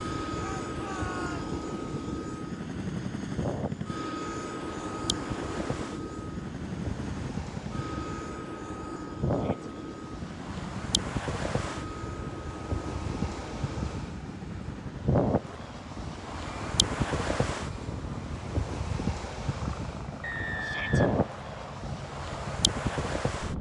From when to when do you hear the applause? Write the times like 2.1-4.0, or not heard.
not heard.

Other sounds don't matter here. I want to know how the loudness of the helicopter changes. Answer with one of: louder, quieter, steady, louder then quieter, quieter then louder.
quieter.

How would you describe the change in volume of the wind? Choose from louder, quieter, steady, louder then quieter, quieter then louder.
louder.